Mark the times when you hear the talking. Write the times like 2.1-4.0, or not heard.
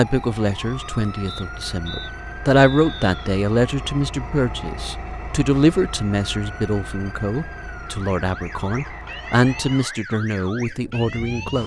0.0-11.6.